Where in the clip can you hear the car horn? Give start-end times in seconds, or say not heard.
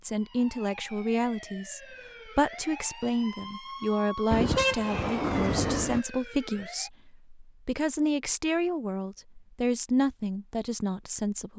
4.3-6.0.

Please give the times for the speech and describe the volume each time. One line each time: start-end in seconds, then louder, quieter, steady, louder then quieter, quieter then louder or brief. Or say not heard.
0.0-11.5 steady.